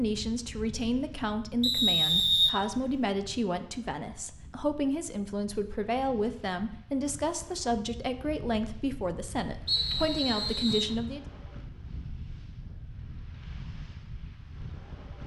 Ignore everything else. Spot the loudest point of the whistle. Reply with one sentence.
The volume of the whistle peaks at 2 seconds.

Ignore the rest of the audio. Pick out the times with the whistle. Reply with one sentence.
The whistle can be heard from 1.6 to 3.0 s and from 9.7 to 10.9 s.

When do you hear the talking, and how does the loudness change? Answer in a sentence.
The talking can be heard from 0.0 to 11.2 s, at a steady volume.